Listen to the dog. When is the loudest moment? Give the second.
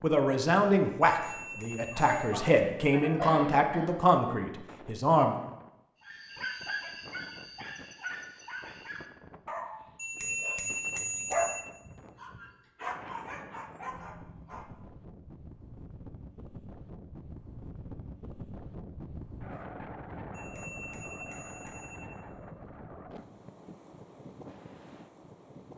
11 s.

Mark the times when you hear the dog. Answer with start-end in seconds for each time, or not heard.
6.0-14.7.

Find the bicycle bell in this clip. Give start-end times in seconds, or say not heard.
1.1-2.4, 9.9-11.7, 20.3-22.1.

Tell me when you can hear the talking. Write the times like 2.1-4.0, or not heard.
0.0-5.3.